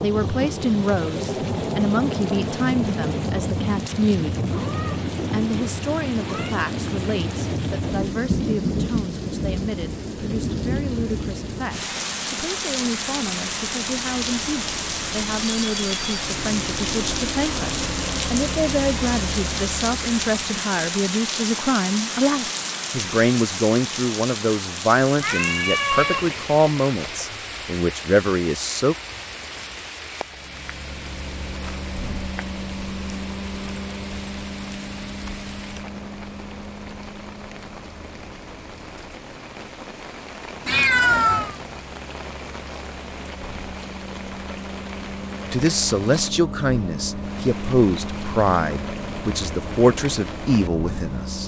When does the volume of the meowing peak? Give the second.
41 s.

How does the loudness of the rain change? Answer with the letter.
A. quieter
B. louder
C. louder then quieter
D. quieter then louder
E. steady
A.